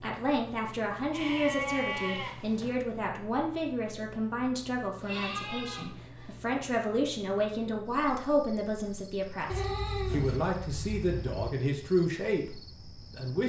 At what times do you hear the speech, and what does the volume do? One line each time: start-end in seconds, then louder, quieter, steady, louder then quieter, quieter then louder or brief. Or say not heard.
0.0-13.4 steady.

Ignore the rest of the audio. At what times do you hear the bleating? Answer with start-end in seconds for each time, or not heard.
1.1-2.8, 5.0-6.3, 9.4-11.5.